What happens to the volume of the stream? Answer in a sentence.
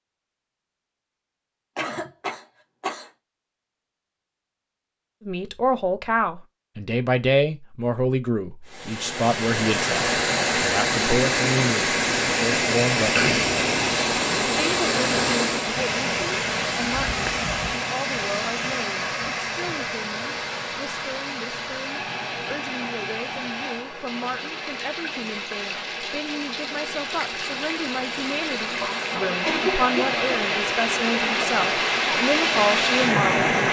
The volume of the stream goes down, then up.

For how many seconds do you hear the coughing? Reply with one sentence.
The coughing can be heard for 4 seconds in total.